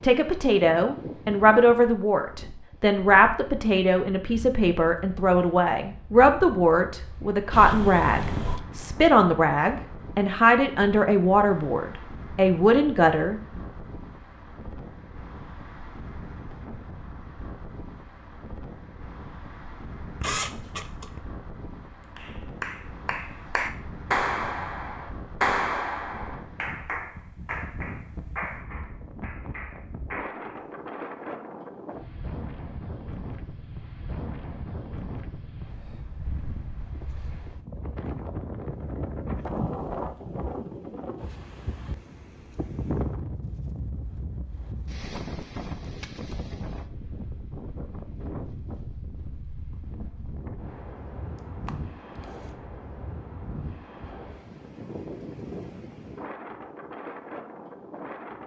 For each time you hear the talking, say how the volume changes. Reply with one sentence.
You can hear the talking from 0.0 to 13.4 s, at a steady volume.